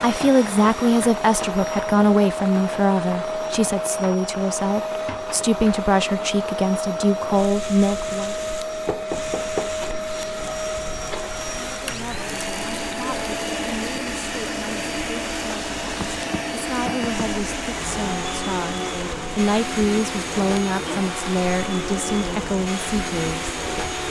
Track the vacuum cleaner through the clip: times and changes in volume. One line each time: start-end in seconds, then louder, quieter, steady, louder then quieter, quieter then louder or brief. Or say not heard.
0.0-24.0 steady.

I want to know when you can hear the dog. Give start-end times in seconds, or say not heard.
not heard.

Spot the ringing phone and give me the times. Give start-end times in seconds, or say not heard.
not heard.